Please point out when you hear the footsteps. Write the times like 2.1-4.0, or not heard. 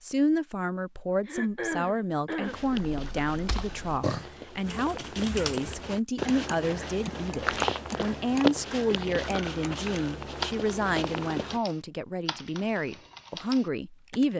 2.4-11.6.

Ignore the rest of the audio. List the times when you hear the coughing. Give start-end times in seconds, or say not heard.
1.2-2.6.